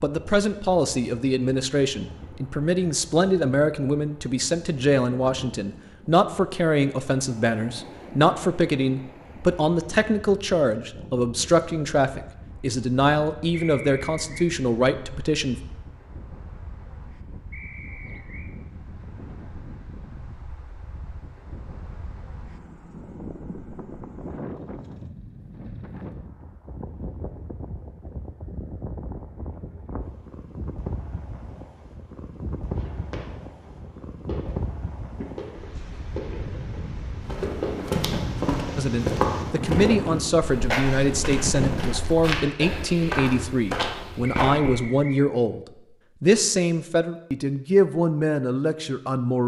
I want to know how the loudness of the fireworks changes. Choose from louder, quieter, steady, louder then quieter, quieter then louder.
louder.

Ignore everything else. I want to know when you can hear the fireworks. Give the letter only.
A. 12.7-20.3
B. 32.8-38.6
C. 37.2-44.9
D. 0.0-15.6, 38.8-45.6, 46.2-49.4
B.